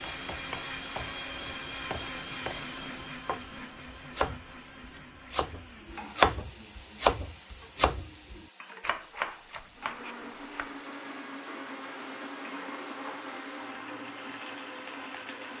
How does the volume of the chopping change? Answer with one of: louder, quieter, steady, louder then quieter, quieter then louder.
louder then quieter.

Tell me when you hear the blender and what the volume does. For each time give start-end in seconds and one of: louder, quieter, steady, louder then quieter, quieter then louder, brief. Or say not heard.
0.0-6.3 quieter
9.7-15.5 steady.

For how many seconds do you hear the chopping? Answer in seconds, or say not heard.
11 s.